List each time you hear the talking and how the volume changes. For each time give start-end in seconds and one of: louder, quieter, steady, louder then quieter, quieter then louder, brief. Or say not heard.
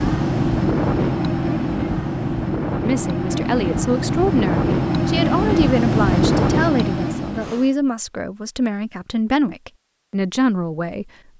2.7-11.3 steady.